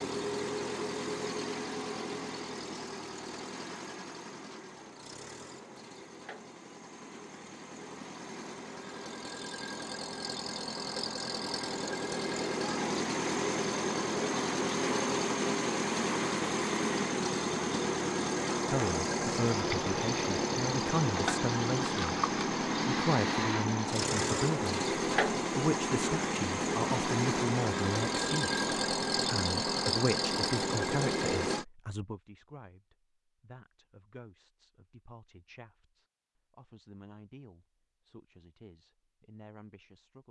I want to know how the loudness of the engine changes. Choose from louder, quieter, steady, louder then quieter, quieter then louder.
louder.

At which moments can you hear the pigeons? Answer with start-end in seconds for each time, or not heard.
not heard.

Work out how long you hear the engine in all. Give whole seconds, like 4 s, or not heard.
32 s.